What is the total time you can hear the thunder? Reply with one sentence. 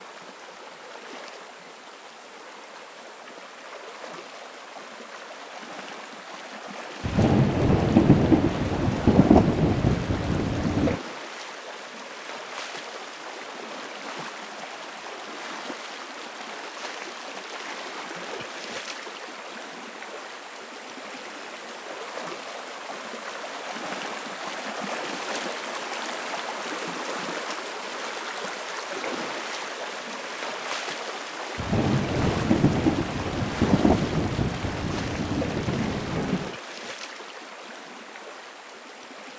The thunder can be heard for 9 seconds in total.